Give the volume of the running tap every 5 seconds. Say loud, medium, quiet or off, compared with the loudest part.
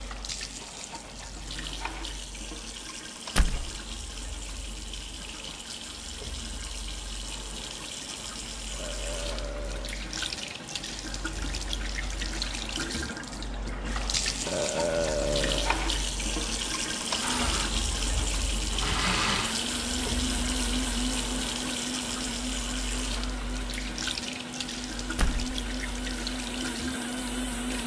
medium, medium, loud, loud, loud, medium.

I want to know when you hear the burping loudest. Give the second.
15 s.